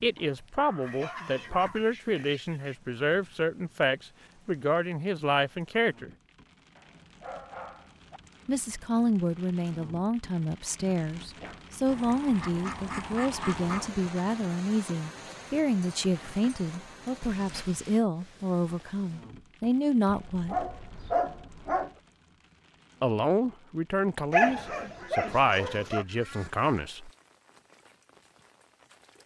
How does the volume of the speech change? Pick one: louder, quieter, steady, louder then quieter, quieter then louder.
steady.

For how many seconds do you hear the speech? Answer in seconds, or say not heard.
22 s.